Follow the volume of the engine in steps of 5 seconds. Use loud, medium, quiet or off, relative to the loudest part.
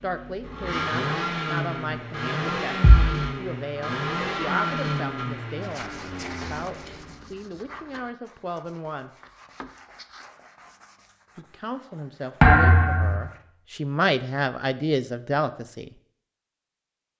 loud, medium, off, off.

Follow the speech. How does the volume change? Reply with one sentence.
The loudness of the speech goes up.